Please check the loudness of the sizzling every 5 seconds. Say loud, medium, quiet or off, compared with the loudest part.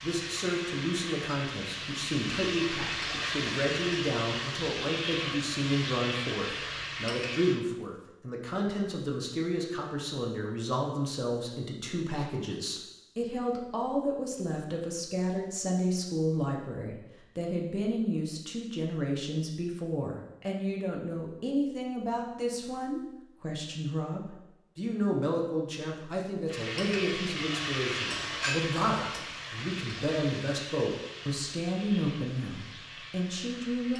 loud, loud, off, off, off, loud, medium.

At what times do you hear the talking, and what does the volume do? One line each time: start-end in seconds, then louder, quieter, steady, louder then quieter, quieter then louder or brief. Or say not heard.
0.0-33.9 steady.